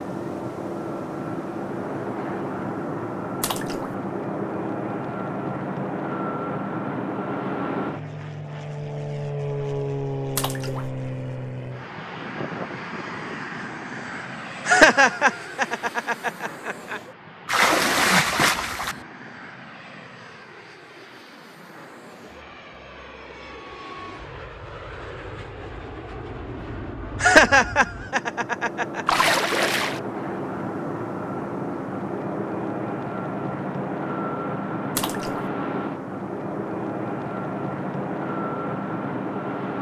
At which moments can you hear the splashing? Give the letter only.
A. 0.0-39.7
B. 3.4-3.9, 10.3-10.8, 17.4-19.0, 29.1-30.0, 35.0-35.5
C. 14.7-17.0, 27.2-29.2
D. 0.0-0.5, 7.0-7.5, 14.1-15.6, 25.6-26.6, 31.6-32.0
B.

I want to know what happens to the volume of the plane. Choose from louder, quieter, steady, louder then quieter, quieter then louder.
quieter then louder.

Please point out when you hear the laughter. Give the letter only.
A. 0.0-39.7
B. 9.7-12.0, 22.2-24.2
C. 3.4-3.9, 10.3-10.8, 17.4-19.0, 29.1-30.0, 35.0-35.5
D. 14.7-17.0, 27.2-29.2
D.